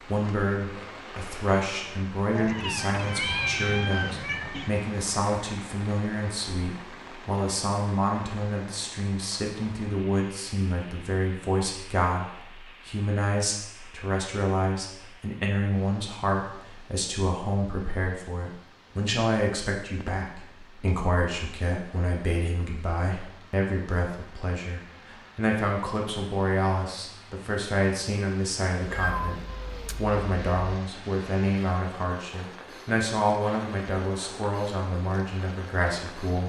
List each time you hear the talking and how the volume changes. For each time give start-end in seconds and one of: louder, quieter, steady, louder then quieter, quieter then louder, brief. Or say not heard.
0.0-36.4 steady.